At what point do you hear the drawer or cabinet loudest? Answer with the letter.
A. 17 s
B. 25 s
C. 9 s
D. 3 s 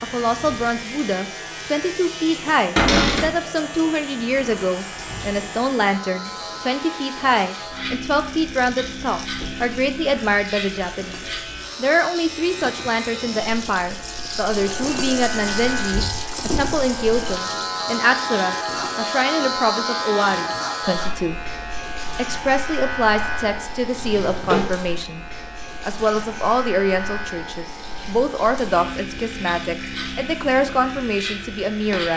D.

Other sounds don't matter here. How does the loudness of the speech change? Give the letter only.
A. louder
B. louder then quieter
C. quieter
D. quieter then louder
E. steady
E.